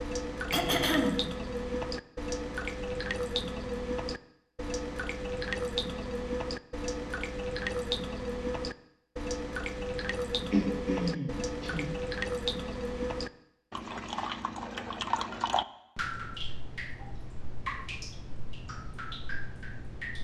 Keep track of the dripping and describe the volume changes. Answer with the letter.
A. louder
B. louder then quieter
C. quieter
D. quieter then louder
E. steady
C.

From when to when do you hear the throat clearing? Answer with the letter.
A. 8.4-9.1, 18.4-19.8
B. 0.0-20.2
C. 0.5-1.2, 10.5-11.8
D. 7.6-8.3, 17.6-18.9
C.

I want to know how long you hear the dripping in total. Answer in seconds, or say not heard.
20 s.